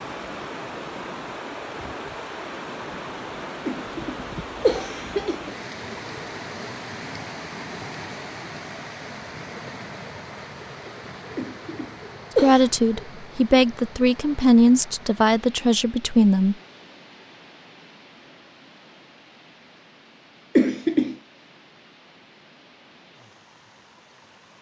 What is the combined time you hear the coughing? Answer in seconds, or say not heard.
4 s.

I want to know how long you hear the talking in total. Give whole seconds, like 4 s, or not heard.
4 s.